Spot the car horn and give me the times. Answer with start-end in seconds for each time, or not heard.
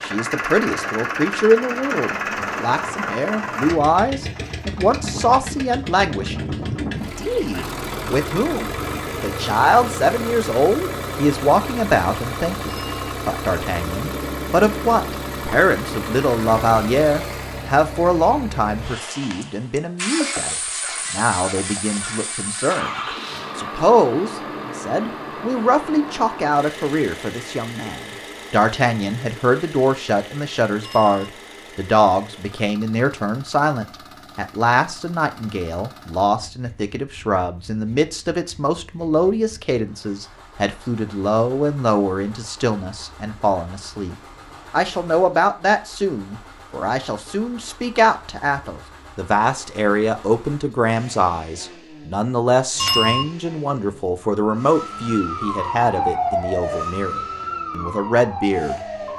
not heard.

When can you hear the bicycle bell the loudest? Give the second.
53 s.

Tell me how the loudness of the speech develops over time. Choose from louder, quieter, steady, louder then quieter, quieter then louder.
steady.